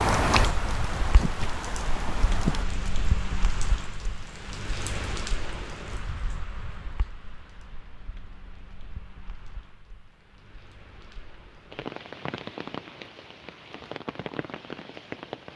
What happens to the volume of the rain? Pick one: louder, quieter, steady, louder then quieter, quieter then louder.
quieter then louder.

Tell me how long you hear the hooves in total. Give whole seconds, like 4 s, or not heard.
3 s.